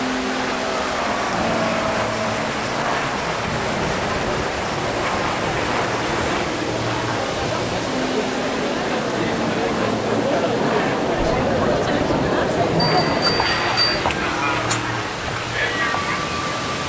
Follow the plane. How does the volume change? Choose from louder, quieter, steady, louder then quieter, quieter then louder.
steady.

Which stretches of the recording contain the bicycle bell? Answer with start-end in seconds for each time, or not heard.
12.8-14.1.